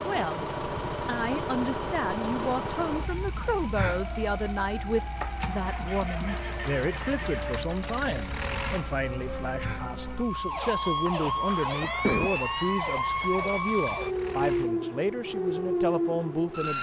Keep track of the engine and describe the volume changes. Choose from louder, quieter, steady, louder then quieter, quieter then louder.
quieter.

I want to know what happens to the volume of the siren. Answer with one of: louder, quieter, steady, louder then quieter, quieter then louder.
louder.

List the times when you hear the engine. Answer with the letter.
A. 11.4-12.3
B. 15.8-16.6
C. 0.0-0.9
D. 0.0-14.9
D.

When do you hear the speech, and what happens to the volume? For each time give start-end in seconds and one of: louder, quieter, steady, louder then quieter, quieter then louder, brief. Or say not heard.
0.0-0.5 brief
1.1-16.7 steady.